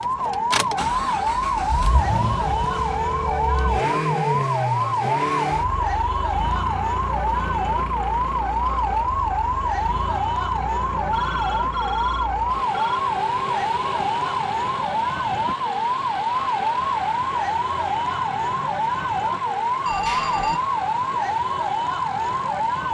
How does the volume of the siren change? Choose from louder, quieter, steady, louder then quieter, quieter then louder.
steady.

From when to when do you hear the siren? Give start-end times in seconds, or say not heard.
0.0-22.8.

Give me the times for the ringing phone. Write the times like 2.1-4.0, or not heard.
2.4-4.5, 11.1-13.0, 19.9-20.6.